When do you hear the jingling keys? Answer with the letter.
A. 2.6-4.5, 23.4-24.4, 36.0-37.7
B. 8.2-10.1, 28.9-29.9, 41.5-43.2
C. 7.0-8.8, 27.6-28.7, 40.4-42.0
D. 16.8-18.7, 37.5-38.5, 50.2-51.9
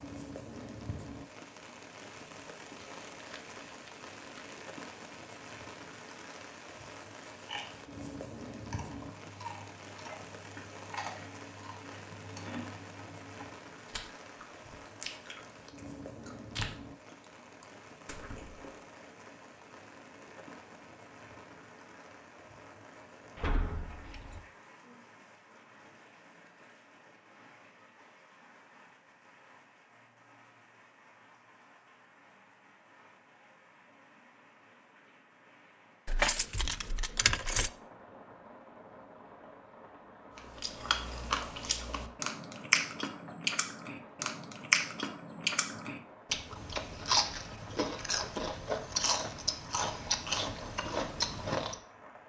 A.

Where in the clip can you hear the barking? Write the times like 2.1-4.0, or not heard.
not heard.